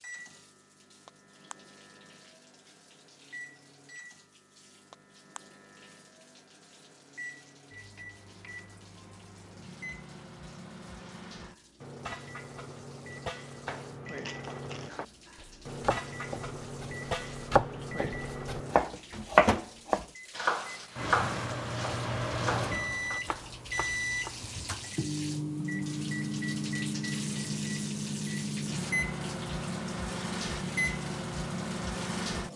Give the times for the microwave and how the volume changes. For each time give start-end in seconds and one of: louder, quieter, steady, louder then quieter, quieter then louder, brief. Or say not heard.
0.0-32.5 louder.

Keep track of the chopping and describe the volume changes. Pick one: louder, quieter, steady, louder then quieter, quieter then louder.
louder then quieter.